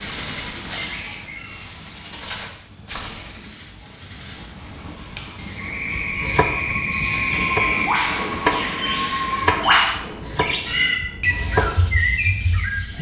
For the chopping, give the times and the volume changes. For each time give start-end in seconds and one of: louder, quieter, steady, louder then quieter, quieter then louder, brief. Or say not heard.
6.0-11.9 louder then quieter.